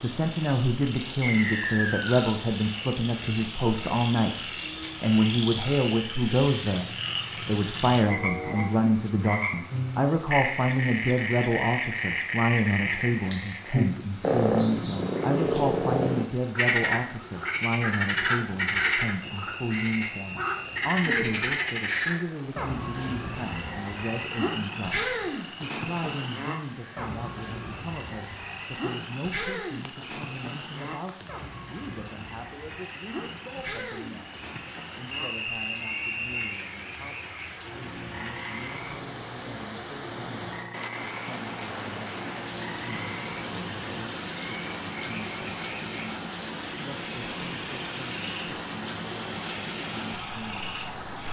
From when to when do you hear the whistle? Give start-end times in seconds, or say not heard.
1.2-2.4, 19.2-20.9, 35.1-36.6.